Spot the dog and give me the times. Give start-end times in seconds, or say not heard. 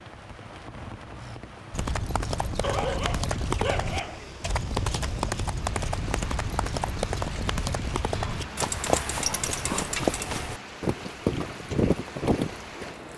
2.6-4.3, 8.2-9.9.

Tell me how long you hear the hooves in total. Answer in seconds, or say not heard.
11 s.